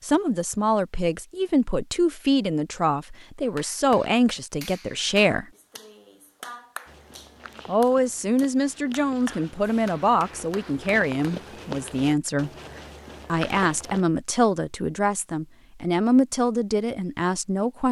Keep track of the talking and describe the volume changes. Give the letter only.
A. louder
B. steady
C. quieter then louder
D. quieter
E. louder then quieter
B.